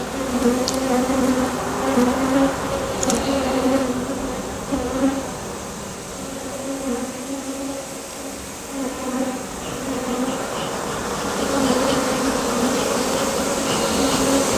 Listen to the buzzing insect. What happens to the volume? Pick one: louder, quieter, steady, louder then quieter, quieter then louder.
quieter then louder.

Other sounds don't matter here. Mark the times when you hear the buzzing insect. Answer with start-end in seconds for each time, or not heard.
0.0-14.5.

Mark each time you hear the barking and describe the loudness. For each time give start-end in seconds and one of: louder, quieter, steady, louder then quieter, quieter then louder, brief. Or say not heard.
not heard.